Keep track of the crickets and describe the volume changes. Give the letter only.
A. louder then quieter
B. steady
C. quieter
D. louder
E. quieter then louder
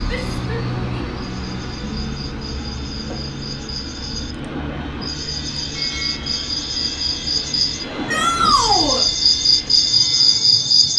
D.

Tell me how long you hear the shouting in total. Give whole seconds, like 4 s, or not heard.
2 s.